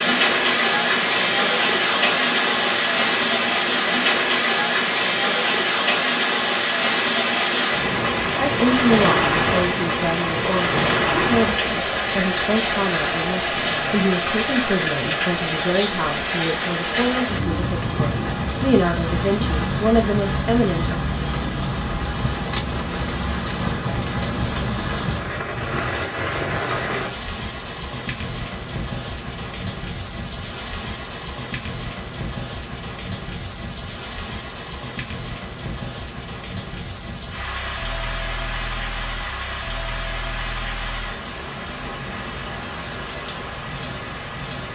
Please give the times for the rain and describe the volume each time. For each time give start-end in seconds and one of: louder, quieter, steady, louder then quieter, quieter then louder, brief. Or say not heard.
0.0-44.6 quieter.